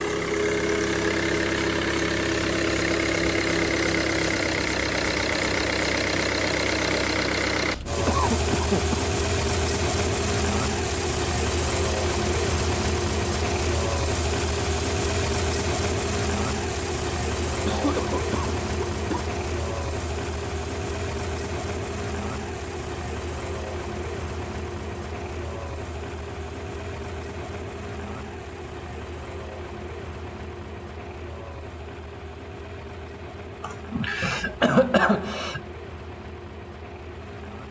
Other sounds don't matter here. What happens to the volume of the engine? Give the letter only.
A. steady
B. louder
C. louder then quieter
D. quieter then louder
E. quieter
E.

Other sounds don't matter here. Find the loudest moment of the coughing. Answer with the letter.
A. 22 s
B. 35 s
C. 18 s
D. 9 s
B.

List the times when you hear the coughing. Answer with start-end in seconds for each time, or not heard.
8.1-9.1, 17.4-19.2, 33.6-35.6.